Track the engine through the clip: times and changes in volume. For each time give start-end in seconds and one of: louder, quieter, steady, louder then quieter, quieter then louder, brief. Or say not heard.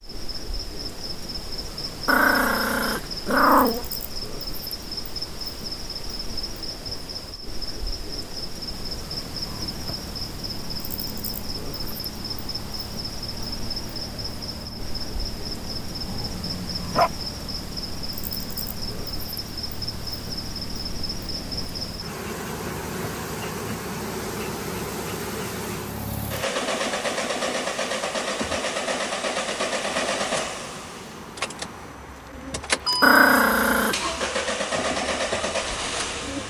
8.7-36.4 louder.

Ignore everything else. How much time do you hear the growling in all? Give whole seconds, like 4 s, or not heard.
4 s.